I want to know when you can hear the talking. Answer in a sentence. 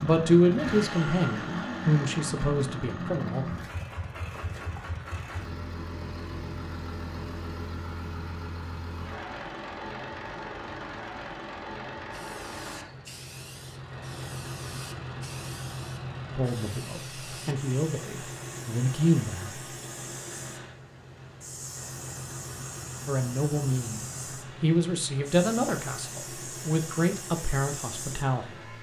The talking can be heard from 0.0 to 3.5 s, from 16.4 to 19.6 s and from 23.1 to 28.7 s.